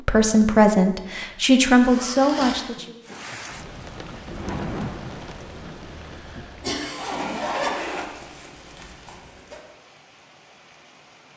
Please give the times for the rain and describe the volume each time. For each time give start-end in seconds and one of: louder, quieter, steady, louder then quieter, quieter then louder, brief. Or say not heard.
3.0-11.3 quieter.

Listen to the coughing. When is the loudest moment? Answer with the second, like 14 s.
7 s.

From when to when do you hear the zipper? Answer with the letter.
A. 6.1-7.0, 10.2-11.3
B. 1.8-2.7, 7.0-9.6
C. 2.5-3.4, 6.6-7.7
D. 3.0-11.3
B.